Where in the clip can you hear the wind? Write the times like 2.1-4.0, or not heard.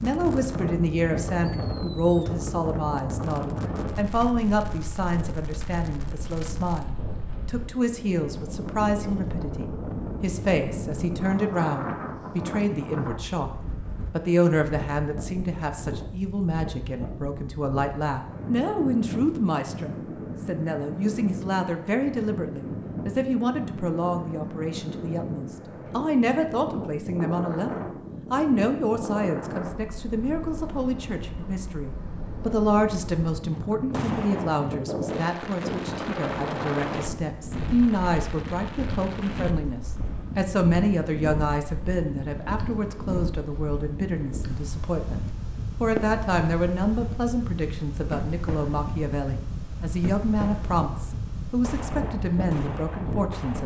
0.0-53.6.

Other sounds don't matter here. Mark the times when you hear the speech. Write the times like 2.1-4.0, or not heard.
0.0-13.5, 14.1-45.2, 45.8-53.6.